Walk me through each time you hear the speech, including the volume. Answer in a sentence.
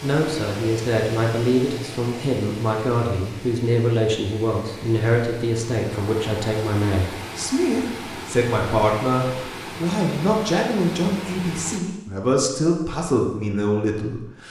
You can hear the speech from 0.0 to 14.4 s, at a steady volume.